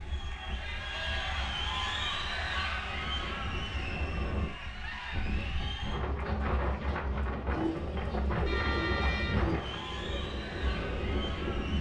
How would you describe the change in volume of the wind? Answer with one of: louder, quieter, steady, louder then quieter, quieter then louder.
louder.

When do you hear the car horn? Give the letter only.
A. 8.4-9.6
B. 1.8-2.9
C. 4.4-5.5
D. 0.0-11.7
A.